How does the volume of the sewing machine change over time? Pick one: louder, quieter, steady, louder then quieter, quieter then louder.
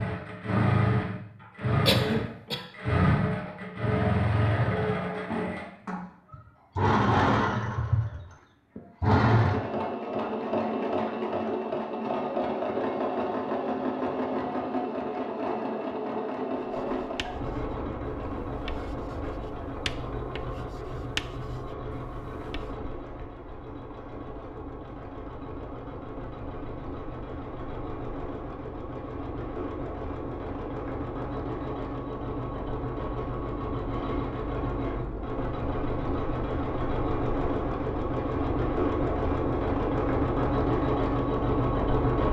quieter then louder.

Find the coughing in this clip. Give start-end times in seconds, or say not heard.
1.9-2.6.